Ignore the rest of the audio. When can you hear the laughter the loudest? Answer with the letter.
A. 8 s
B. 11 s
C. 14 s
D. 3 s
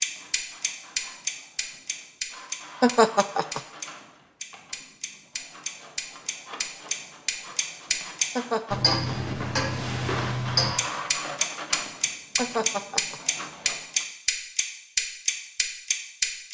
D.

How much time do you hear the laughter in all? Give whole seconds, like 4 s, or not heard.
2 s.